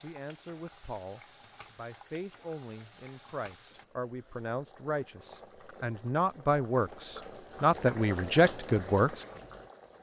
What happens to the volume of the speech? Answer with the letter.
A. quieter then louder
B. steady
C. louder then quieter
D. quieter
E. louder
E.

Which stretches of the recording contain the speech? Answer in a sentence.
The speech can be heard from 0.0 to 9.2 s.